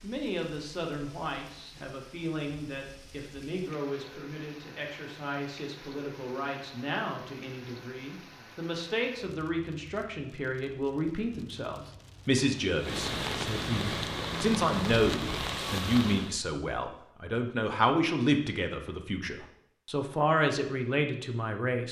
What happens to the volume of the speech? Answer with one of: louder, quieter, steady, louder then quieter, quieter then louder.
louder.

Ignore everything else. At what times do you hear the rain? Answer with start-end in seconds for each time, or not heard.
0.0-16.4.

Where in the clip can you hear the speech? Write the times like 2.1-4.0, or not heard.
0.0-21.8.